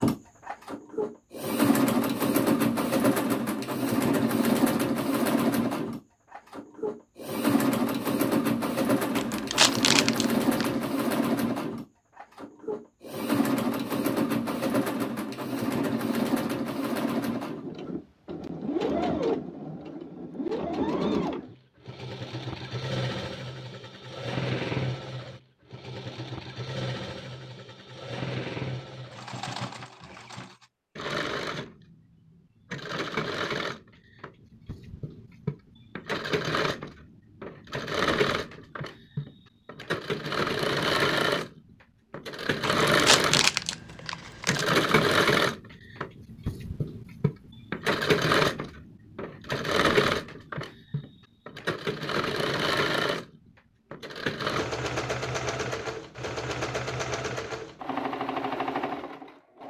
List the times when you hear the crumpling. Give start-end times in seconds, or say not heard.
9.2-10.7, 42.6-44.6.